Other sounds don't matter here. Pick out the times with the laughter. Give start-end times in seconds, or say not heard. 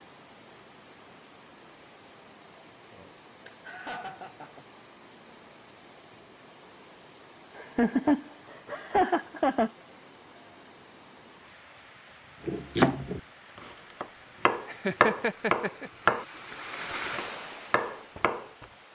3.5-4.7, 7.5-9.7, 14.7-15.9.